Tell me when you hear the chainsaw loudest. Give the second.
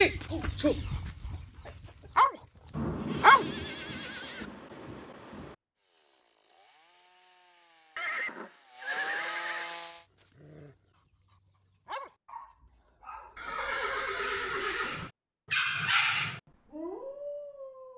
9 s.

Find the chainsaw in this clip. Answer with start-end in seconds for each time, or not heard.
5.8-10.1.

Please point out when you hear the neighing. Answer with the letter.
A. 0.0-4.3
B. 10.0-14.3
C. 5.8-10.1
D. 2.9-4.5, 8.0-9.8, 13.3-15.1
D.